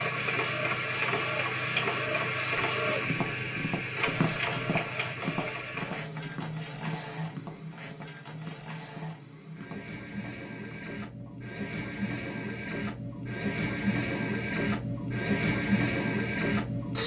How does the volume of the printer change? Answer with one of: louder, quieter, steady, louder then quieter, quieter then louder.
quieter then louder.